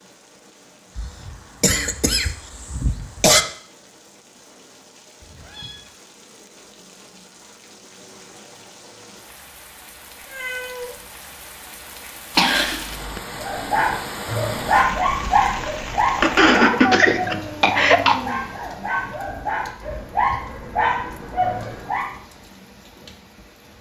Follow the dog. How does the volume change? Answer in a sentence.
The loudness of the dog goes down, then up.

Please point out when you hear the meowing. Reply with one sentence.
The meowing can be heard from 5.2 to 5.8 s, from 10.2 to 11.0 s and from 16.8 to 18.4 s.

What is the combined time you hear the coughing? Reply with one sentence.
You can hear the coughing for 5 seconds altogether.